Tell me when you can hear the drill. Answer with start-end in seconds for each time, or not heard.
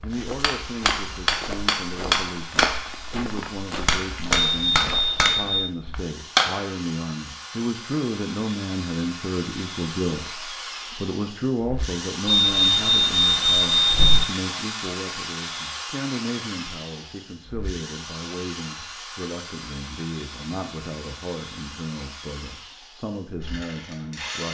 0.1-24.4.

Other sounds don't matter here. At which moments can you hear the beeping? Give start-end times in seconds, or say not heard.
4.5-5.7, 12.2-14.2.